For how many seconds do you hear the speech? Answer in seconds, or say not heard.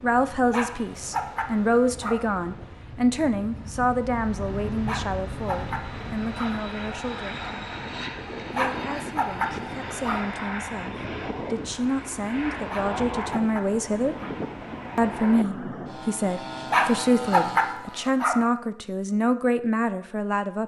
19 s.